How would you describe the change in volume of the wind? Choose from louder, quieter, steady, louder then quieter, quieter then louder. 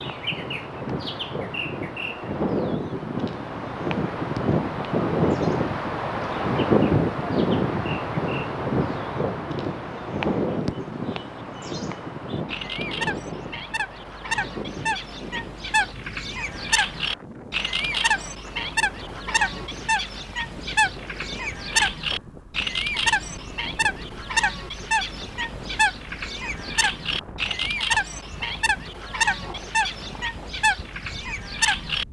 quieter.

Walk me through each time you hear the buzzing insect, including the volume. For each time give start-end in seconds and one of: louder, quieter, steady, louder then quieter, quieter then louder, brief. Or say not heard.
not heard.